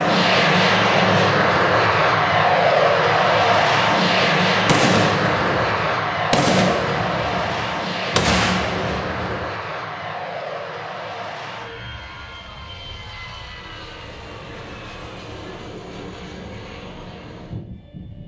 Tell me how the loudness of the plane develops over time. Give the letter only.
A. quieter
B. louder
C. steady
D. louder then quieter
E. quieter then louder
A.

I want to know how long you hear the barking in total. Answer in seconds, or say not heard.
not heard.